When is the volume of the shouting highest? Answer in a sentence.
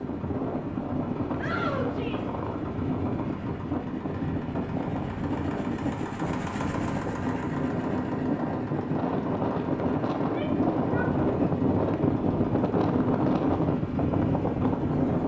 The volume of the shouting peaks at 2 seconds.